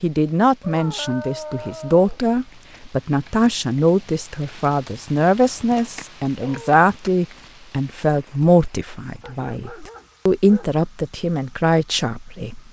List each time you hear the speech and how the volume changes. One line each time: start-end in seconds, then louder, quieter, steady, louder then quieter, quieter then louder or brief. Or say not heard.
0.0-12.6 steady.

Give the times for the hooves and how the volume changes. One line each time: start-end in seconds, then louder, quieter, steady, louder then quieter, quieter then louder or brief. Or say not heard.
not heard.